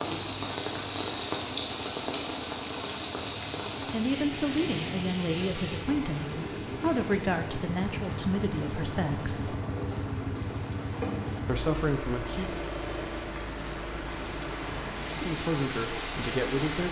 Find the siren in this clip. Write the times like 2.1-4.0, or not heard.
not heard.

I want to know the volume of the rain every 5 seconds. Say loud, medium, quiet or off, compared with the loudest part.
loud, medium, medium, loud.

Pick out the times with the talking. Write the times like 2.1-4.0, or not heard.
3.9-9.6, 11.4-12.6, 15.1-16.8.